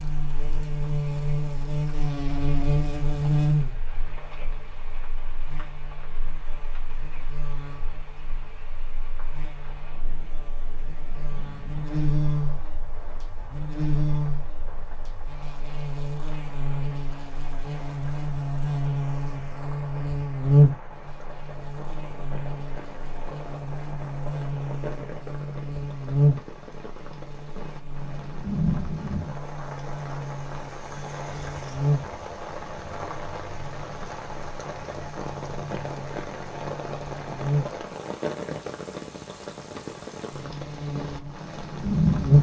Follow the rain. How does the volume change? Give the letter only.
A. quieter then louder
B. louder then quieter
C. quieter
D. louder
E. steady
D.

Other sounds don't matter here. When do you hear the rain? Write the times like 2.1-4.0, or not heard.
0.0-42.3.